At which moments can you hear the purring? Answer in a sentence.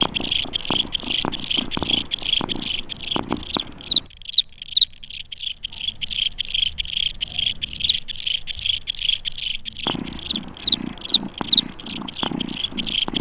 The purring can be heard from 0.0 to 4.0 s and from 9.8 to 13.1 s.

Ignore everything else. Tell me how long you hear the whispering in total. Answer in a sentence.
The whispering can't be heard in this clip.